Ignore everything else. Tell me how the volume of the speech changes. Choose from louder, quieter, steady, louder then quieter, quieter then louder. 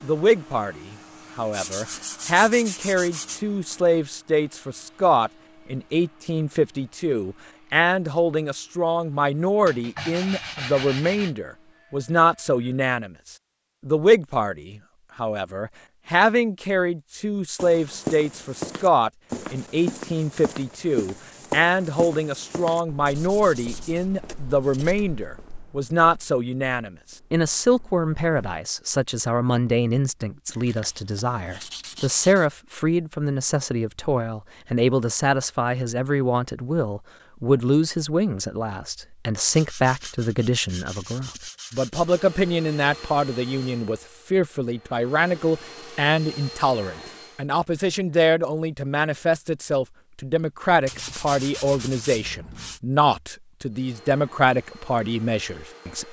steady.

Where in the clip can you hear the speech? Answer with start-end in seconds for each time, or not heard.
0.0-56.0.